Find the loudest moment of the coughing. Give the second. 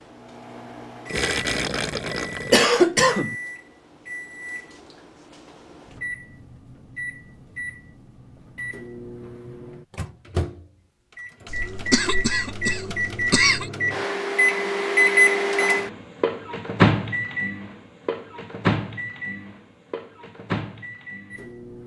3 s.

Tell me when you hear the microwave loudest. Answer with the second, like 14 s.
15 s.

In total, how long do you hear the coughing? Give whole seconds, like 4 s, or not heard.
3 s.